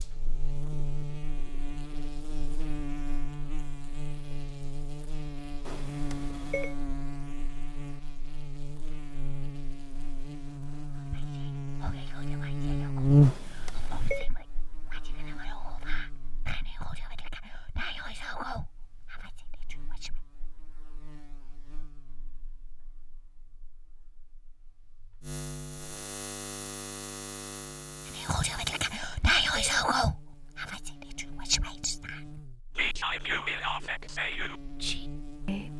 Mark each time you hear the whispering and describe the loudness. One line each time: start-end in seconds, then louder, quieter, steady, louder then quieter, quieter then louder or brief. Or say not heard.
10.9-20.1 louder
28.1-35.7 quieter.